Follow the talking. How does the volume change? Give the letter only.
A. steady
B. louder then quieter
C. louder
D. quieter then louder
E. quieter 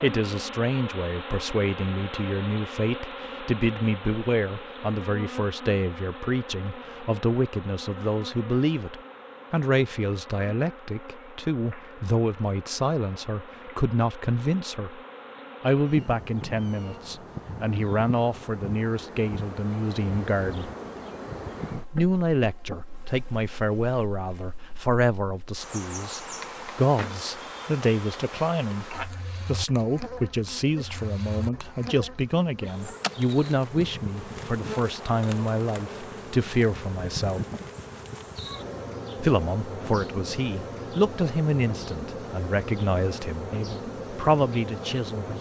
A.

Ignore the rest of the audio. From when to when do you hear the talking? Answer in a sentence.
The talking can be heard from 0.0 to 15.0 s, from 15.6 to 20.7 s, from 21.9 to 37.4 s and from 39.1 to 45.3 s.